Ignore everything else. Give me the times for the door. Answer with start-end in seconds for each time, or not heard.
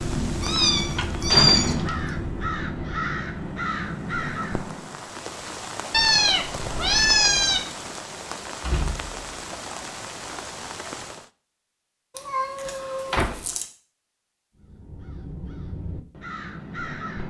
0.5-2.0, 8.2-9.3, 13.1-13.5.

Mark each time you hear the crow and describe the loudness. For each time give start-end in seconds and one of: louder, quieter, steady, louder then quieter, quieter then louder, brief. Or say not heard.
0.0-5.0 steady
14.6-17.2 brief.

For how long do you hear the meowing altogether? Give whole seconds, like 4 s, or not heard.
5 s.